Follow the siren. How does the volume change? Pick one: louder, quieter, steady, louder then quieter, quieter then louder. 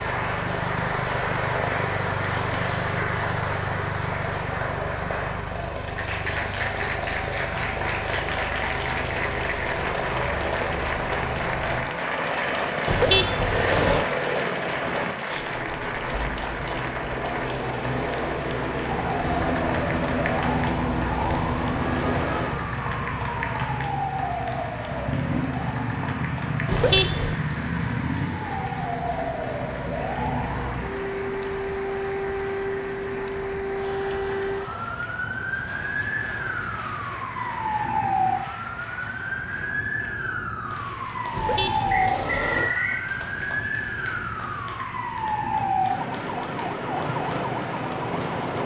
steady.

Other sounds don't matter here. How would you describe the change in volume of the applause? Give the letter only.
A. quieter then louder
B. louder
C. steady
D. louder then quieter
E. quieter
E.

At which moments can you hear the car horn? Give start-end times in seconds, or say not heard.
12.8-14.1, 26.6-27.4, 41.3-42.8.